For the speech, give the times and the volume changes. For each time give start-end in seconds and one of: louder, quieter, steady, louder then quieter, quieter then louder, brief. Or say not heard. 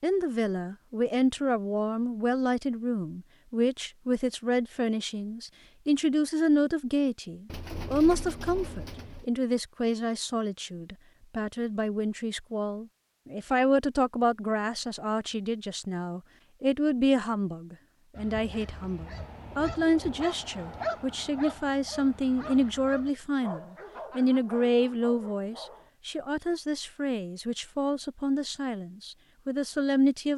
0.0-30.3 steady.